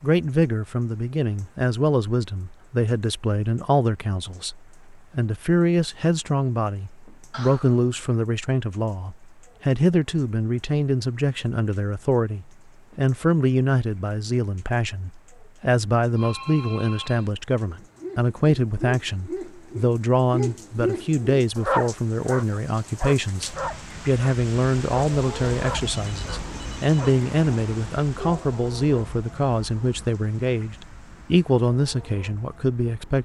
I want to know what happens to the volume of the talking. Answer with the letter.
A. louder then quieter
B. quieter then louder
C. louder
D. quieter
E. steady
E.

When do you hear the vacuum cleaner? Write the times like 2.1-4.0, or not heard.
not heard.